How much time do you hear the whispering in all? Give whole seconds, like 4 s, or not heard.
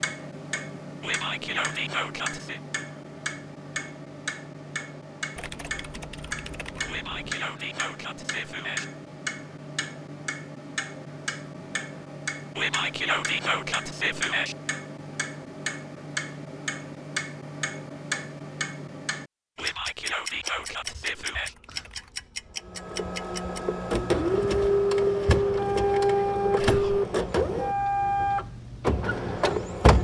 8 s.